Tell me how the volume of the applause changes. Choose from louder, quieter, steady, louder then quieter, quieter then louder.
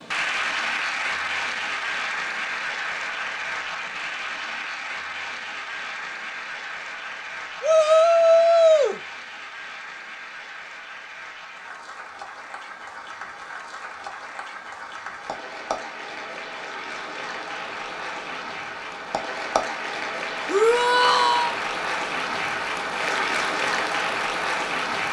quieter then louder.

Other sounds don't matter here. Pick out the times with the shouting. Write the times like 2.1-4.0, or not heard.
7.6-9.0, 20.4-21.6.